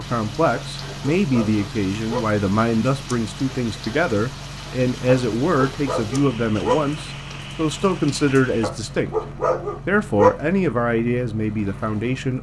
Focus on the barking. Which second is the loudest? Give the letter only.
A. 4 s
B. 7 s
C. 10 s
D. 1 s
C.